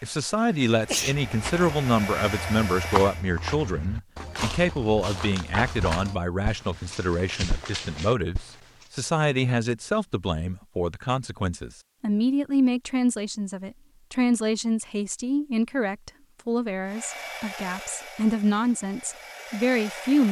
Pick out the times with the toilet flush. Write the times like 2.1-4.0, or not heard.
not heard.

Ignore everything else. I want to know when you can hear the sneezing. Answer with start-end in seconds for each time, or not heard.
0.8-1.8.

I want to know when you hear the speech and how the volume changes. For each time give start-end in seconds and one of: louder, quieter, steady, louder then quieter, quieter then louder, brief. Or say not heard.
0.0-20.2 steady.